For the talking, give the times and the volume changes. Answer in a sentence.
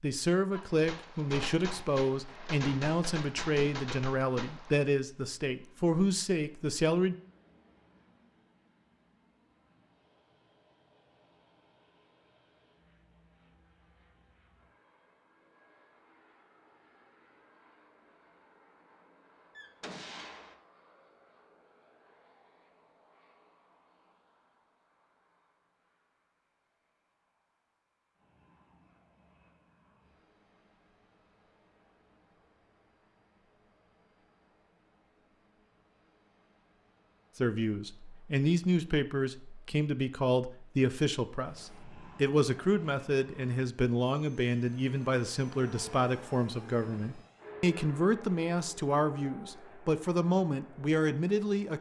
The talking can be heard from 0.0 to 7.2 s, at a steady volume; and from 37.4 to 51.7 s, at a steady volume.